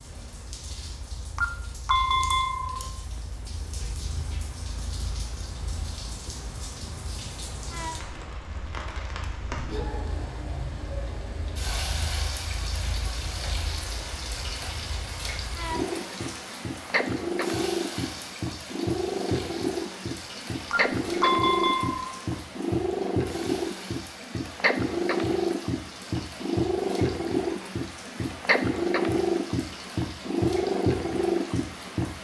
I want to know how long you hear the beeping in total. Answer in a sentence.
The beeping can be heard for 3 seconds in total.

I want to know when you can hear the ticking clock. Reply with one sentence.
You can't hear the ticking clock here.